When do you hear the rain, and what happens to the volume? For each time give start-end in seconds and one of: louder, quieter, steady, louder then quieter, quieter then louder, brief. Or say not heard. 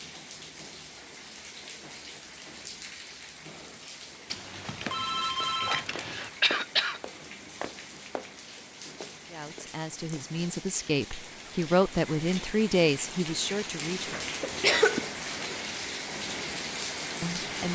0.0-17.7 louder.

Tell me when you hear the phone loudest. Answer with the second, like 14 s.
6 s.